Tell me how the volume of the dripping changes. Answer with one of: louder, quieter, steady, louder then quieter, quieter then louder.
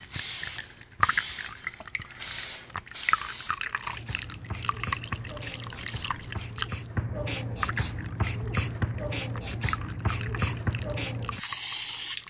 quieter.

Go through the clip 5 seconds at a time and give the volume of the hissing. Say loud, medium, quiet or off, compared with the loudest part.
medium, loud, loud.